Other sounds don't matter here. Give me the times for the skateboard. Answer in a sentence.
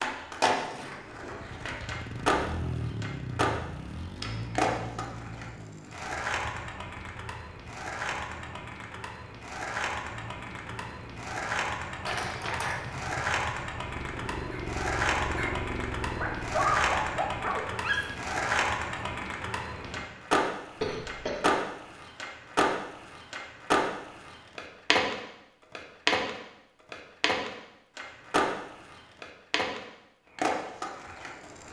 You can hear the skateboard from 0.0 to 31.6 s.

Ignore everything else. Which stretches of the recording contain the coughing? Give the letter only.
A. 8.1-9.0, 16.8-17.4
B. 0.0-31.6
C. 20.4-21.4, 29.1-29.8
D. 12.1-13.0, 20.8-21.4
D.